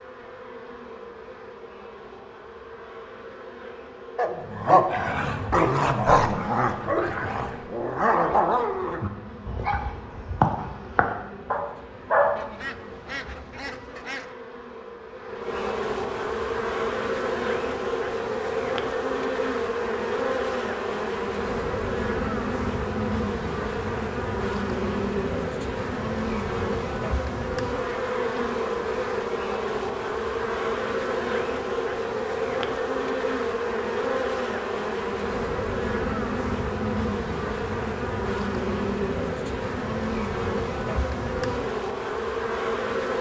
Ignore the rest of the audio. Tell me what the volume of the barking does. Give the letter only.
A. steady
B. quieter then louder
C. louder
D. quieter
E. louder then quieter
D.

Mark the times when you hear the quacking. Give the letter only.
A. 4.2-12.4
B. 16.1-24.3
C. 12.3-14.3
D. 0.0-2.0
C.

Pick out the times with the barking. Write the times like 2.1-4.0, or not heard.
4.2-12.4.